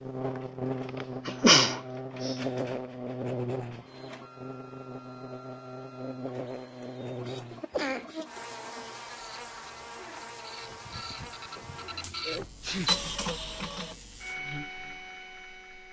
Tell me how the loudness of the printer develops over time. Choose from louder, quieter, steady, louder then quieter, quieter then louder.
louder.